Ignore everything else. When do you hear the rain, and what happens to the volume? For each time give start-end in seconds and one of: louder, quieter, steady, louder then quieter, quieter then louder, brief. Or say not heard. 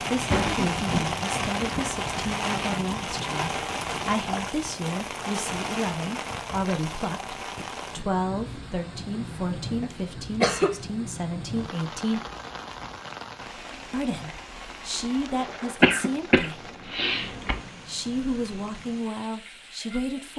0.0-20.3 quieter.